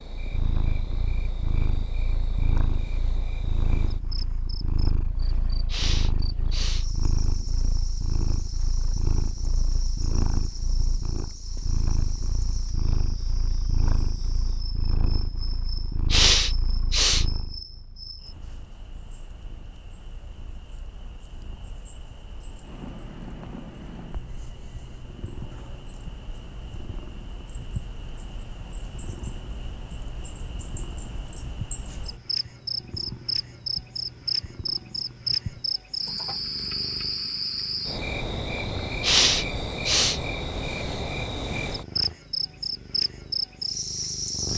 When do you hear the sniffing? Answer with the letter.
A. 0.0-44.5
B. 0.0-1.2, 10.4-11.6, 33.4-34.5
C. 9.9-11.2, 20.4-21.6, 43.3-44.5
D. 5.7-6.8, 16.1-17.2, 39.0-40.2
D.